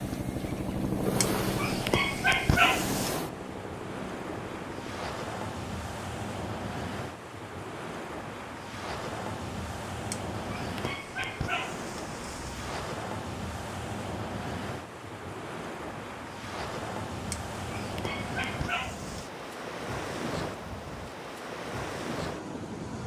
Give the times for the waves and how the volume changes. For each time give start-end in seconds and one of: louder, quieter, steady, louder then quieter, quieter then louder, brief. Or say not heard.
0.0-23.0 steady.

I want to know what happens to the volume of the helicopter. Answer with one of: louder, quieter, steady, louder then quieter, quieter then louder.
quieter.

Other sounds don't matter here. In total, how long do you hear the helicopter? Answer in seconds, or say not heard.
5 s.